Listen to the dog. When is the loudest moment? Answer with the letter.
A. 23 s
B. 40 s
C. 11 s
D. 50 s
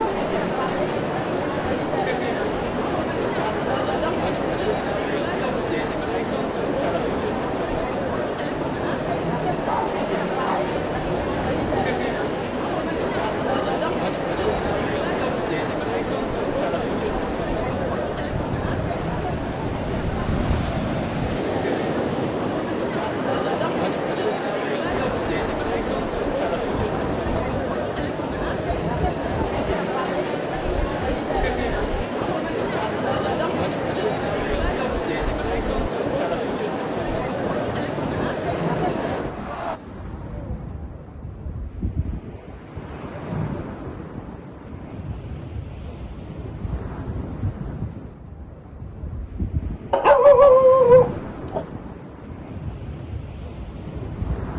D.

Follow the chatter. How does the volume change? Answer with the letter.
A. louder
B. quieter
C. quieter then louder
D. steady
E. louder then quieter
D.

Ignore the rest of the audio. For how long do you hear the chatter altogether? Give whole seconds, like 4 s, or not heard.
40 s.